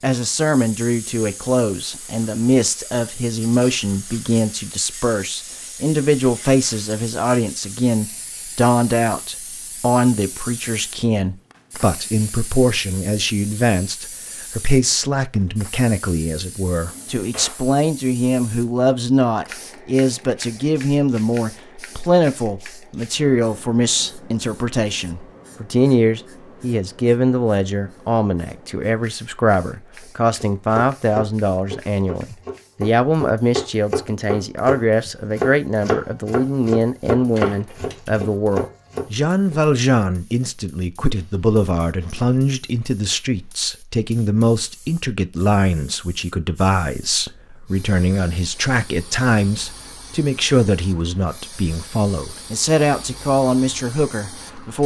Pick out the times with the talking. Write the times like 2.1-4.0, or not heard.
0.0-54.8.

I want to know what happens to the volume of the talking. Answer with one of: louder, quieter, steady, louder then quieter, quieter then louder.
steady.